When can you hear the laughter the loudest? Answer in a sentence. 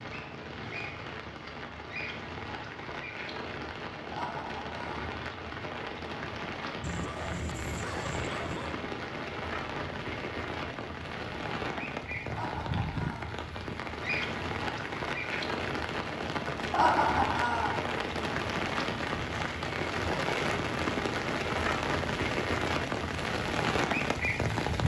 The loudest moment of the laughter is at 17 seconds.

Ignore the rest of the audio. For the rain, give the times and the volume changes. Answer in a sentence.
You can hear the rain from 0.0 to 24.8 s, getting louder.